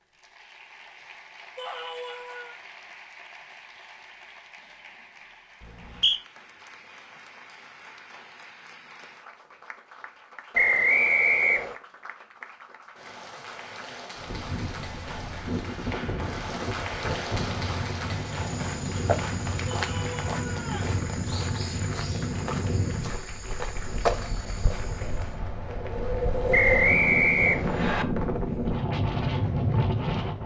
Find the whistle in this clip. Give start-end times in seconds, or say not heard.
5.6-6.2, 10.5-11.8, 26.5-28.1.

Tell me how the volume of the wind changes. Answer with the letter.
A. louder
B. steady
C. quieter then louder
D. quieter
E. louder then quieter
A.